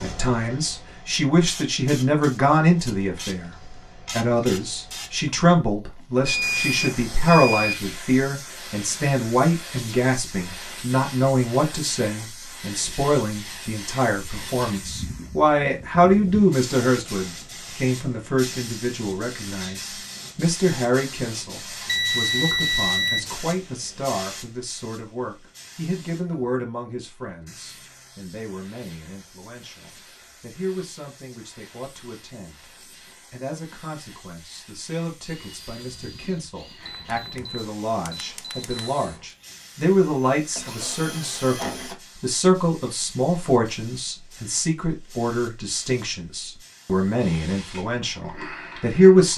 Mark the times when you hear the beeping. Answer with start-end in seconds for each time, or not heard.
6.2-7.8, 21.9-23.3, 36.9-38.9.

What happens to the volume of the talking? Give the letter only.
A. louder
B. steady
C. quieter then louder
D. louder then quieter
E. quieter
C.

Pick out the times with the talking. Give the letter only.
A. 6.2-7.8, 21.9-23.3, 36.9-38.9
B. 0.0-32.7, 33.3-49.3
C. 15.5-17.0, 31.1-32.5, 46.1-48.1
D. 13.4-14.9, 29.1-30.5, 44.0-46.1
B.